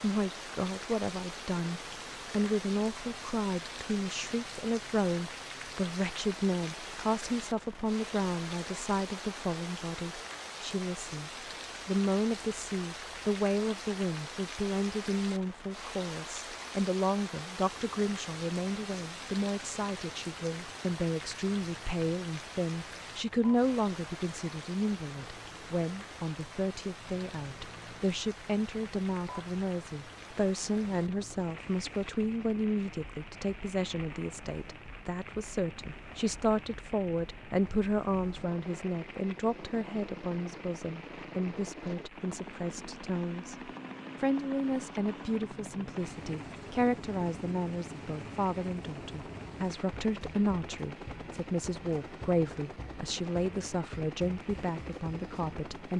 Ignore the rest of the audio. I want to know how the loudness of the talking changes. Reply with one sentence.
The volume of the talking stays about the same.